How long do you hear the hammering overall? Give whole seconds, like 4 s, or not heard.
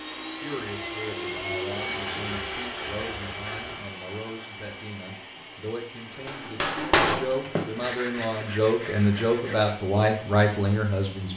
2 s.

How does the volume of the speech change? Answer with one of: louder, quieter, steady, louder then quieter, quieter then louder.
louder.